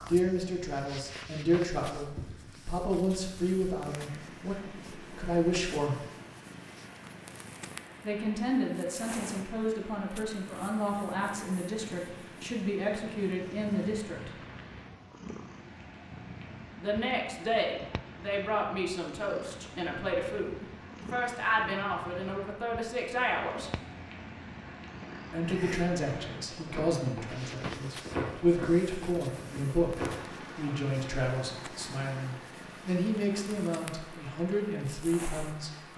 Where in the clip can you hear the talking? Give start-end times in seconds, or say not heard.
0.1-6.0, 8.0-14.3, 16.8-23.7, 25.3-35.9.